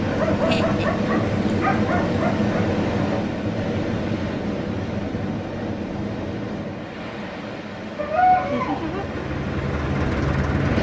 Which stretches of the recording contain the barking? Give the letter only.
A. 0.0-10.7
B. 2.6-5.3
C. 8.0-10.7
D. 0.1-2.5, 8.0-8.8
D.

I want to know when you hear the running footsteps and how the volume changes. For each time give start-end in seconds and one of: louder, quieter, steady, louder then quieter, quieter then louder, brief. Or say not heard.
not heard.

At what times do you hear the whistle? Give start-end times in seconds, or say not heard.
not heard.